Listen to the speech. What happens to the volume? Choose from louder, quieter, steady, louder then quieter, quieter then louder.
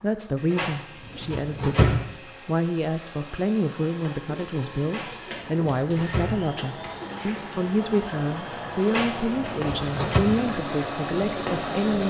steady.